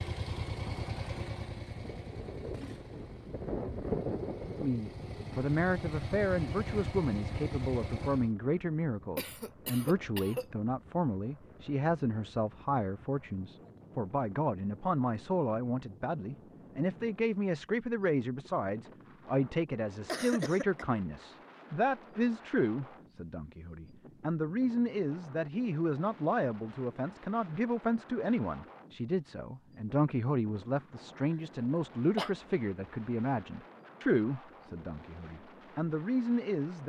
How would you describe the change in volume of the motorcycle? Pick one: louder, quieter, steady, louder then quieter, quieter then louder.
quieter then louder.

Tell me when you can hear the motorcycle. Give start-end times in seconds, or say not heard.
0.0-8.3.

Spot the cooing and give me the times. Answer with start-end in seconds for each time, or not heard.
not heard.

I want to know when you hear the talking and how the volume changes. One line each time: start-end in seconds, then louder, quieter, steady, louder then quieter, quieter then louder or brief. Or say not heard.
4.6-36.8 steady.